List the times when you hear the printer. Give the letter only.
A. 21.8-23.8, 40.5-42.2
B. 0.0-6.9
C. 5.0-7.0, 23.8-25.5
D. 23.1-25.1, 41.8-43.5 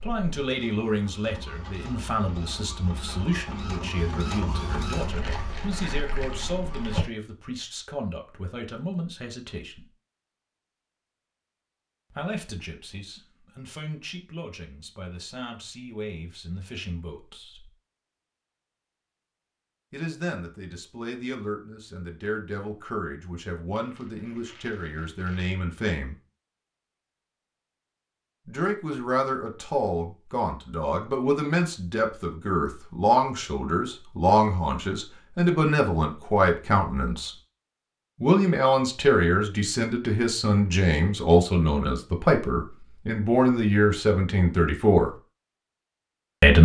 B.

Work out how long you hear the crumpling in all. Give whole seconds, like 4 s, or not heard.
4 s.